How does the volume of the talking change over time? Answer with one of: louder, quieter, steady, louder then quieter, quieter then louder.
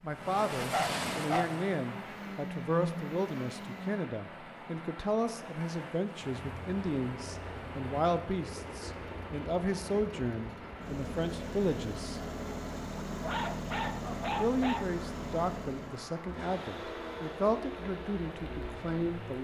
steady.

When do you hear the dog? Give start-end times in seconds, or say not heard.
0.7-1.4, 13.2-14.8.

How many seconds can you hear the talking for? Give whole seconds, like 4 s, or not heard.
17 s.